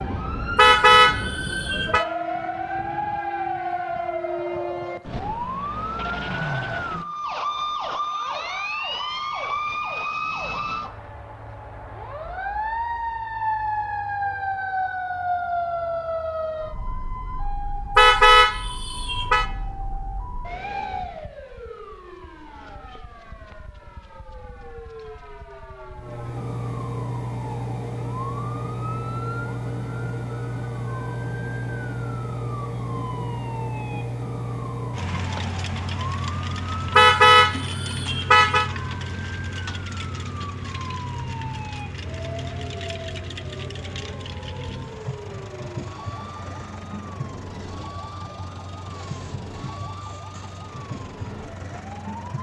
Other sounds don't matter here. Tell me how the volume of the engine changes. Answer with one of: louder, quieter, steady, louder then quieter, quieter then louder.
quieter.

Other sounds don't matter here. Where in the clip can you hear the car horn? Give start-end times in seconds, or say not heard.
0.6-2.0, 17.9-19.4, 37.0-38.7.